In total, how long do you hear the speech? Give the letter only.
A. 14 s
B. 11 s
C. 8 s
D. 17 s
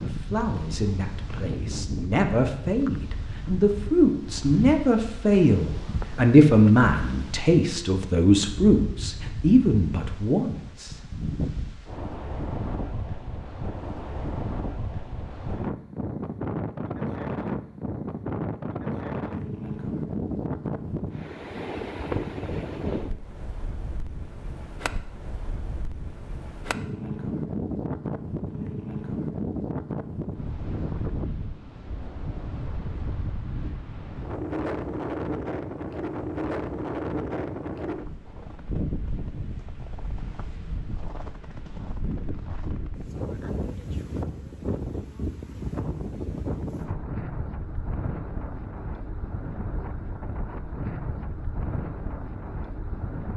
B.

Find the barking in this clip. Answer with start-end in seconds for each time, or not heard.
not heard.